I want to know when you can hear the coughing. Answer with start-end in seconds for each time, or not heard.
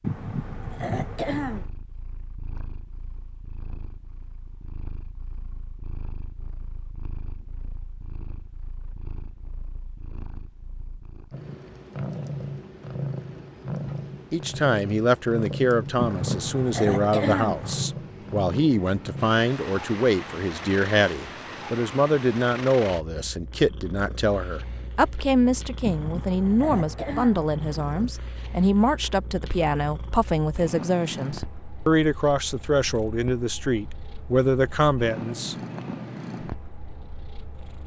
0.0-1.7, 15.9-17.9, 25.8-28.1.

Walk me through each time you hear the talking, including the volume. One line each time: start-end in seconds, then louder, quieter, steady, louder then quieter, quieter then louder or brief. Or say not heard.
14.3-35.5 steady.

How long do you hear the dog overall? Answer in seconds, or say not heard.
not heard.